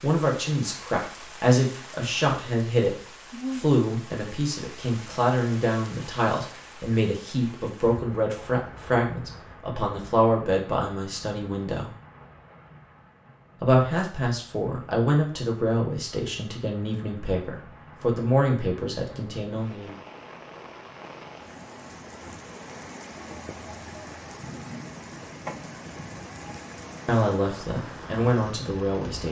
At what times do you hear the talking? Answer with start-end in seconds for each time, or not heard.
0.0-11.9, 13.6-19.9, 27.1-29.2.